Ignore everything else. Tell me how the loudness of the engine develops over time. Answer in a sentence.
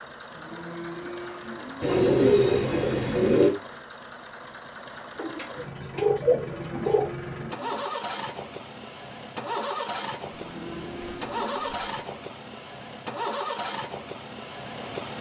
The loudness of the engine goes up.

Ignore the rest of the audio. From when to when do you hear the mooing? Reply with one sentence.
The mooing can be heard from 0.3 to 1.9 s, from 6.3 to 7.8 s and from 10.2 to 11.8 s.